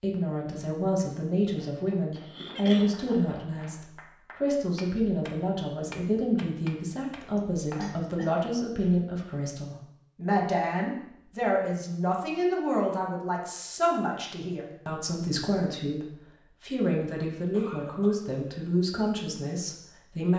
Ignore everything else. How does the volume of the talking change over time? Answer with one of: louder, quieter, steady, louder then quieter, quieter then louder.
steady.